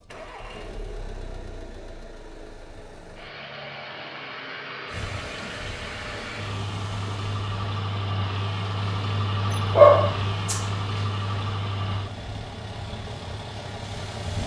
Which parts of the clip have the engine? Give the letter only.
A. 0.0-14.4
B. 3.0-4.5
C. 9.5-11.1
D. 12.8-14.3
A.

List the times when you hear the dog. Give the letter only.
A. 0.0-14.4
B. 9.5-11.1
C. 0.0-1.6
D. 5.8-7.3
B.